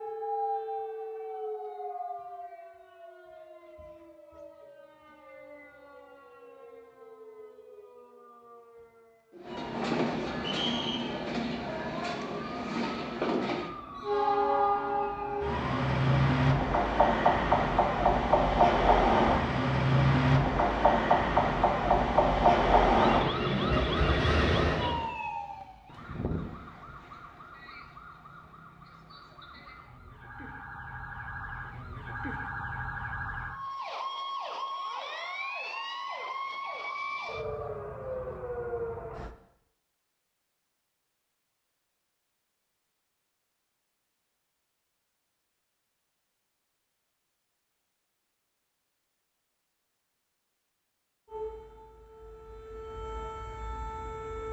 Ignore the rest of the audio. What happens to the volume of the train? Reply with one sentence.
The loudness of the train goes up.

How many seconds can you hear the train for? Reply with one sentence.
The train can be heard for 16 seconds in total.